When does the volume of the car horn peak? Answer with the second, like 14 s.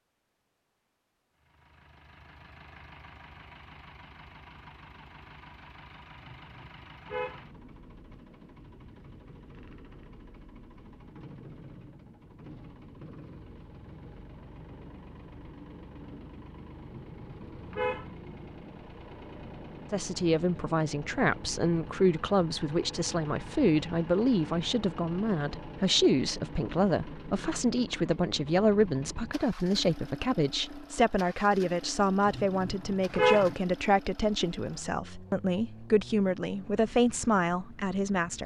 33 s.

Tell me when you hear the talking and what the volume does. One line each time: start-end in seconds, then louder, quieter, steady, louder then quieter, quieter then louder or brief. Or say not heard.
19.9-38.4 steady.